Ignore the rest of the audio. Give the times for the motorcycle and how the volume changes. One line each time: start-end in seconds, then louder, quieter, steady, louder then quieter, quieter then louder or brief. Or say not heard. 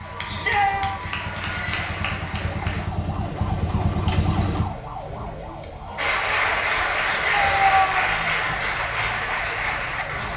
0.0-4.7 louder.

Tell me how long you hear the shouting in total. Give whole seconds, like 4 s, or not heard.
2 s.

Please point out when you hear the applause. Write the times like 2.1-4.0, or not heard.
0.0-2.9, 6.0-10.3.